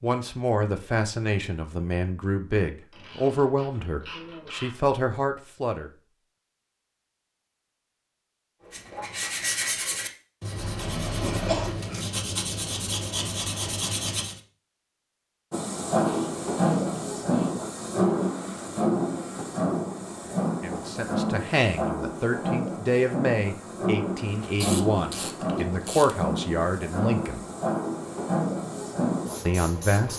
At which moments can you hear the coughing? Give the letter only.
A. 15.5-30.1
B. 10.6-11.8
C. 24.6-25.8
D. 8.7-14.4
B.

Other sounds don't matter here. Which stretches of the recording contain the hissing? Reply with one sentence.
You can hear the hissing from 15.5 to 30.1 s.